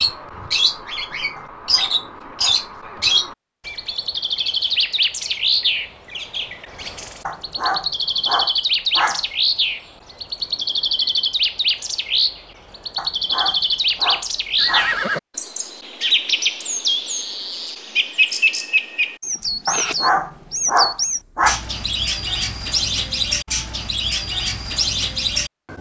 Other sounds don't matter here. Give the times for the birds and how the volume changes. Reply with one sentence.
The birds can be heard from 0.0 to 25.7 s, at a steady volume.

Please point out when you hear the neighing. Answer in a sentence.
You can hear the neighing from 14.6 to 15.2 s.